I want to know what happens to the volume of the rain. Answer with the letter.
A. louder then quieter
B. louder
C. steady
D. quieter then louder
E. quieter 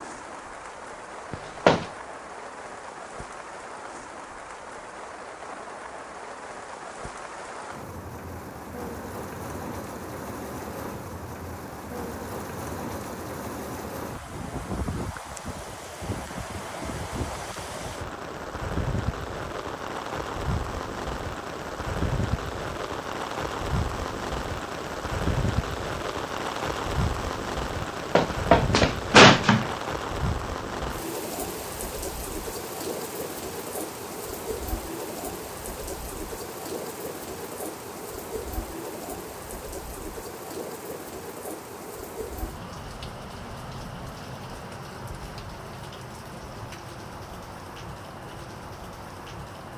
A.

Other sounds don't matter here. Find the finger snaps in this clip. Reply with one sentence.
The finger snaps can't be heard in this clip.